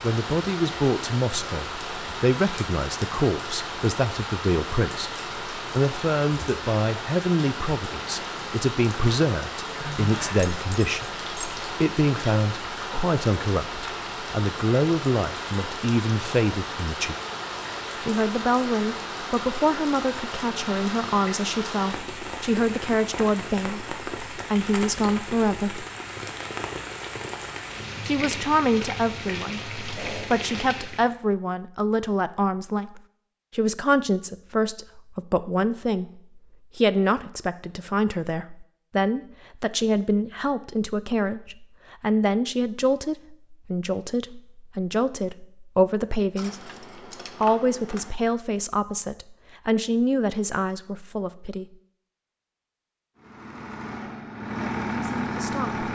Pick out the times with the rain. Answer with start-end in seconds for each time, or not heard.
0.0-31.1.